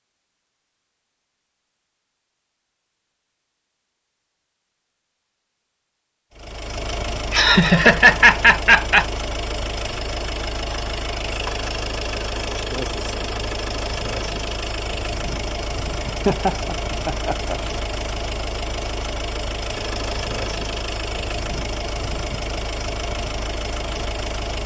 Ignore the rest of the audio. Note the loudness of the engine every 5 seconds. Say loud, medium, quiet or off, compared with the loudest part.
off, loud, loud, loud, loud.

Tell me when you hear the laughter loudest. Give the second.
8 s.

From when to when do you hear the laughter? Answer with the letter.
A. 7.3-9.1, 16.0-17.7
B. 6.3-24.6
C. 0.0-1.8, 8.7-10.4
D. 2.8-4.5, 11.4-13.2
A.